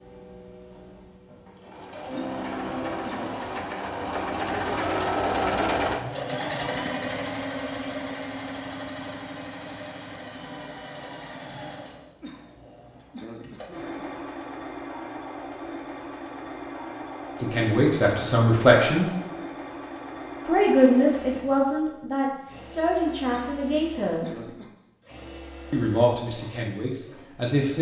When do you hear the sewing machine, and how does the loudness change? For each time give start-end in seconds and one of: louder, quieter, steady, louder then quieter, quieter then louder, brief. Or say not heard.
0.0-27.6 quieter.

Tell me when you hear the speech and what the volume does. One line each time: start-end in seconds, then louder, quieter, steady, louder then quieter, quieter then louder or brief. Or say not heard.
17.4-19.1 brief
20.4-24.4 quieter
25.7-27.7 brief.